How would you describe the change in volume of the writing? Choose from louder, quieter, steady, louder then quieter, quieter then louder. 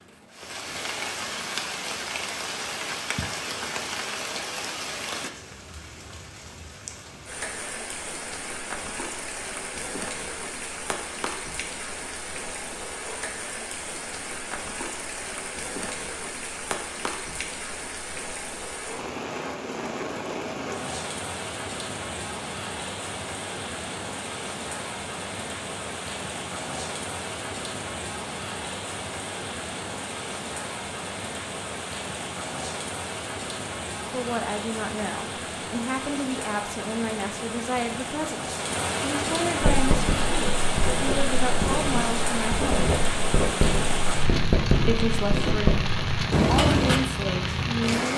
louder.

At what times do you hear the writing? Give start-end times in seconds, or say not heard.
39.6-47.0.